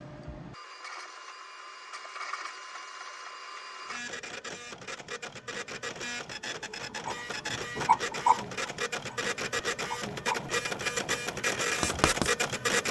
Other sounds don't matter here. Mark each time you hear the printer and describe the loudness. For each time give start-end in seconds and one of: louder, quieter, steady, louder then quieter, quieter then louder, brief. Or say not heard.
0.0-12.8 louder.